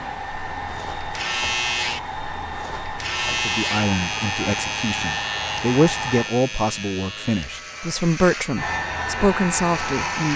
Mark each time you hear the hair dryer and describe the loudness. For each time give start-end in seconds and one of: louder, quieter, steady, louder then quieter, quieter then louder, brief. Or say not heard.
0.0-6.3 steady
8.6-10.3 brief.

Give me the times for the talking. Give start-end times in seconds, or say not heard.
3.2-10.3.